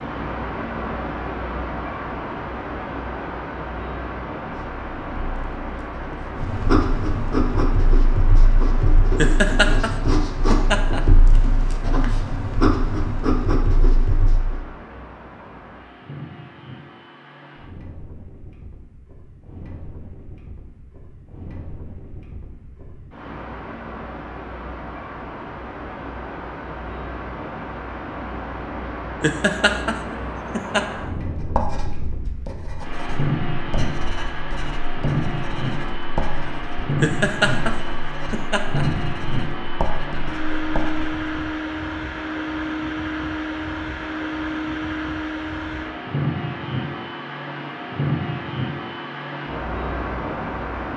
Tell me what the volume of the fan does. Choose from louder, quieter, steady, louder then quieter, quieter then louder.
quieter then louder.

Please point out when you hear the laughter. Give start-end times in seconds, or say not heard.
9.2-11.0, 29.2-30.9, 37.0-38.9.